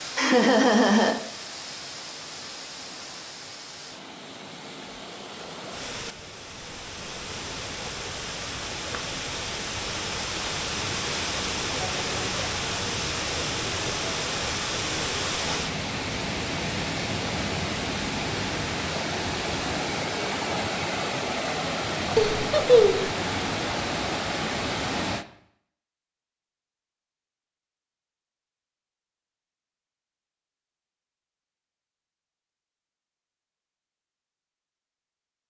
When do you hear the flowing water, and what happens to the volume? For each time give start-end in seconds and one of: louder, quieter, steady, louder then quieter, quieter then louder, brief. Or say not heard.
0.0-25.2 louder.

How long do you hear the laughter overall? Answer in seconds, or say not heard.
2 s.